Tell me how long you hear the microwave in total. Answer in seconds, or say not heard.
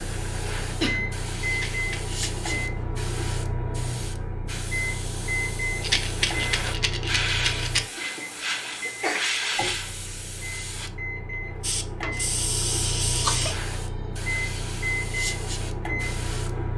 17 s.